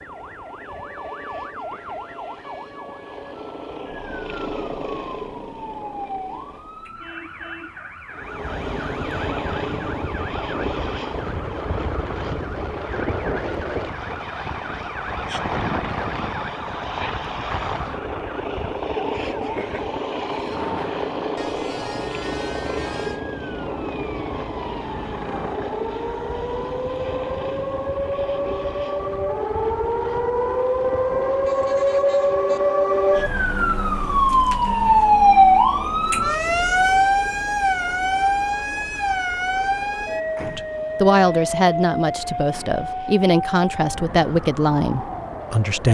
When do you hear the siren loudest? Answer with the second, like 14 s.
35 s.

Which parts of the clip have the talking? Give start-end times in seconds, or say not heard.
40.5-45.8.